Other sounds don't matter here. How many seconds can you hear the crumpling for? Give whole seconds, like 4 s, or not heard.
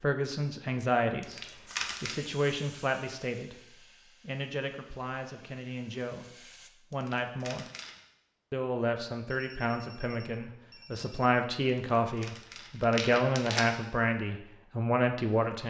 4 s.